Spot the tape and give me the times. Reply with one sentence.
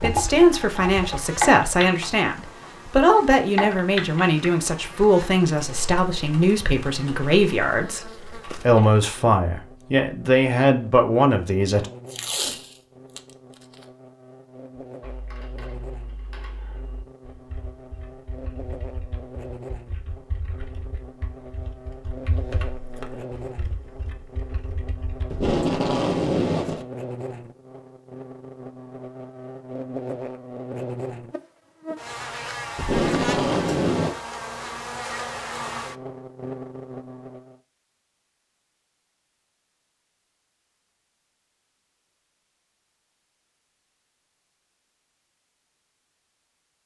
The tape can be heard from 12.1 to 13.2 s, from 25.3 to 26.9 s and from 32.8 to 34.1 s.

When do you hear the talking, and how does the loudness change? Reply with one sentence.
The talking can be heard from 0.0 to 11.8 s, at a steady volume.